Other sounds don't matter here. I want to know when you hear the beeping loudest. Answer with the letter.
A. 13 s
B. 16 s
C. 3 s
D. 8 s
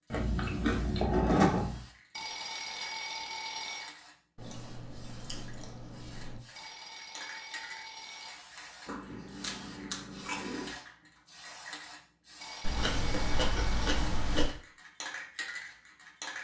C.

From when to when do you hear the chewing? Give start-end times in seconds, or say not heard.
0.1-1.8, 4.3-6.4, 8.8-10.7, 12.6-14.6.